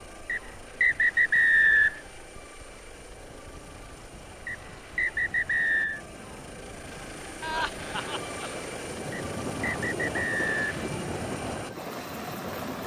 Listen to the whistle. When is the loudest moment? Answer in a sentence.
The volume of the whistle peaks at 2 seconds.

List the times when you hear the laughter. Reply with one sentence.
The laughter can be heard from 7.4 to 8.6 s.